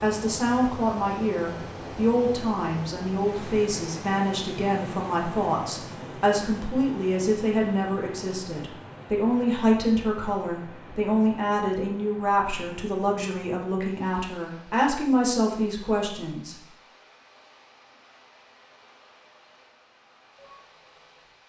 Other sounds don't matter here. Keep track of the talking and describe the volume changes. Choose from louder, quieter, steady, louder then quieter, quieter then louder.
steady.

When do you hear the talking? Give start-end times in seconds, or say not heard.
0.0-16.6.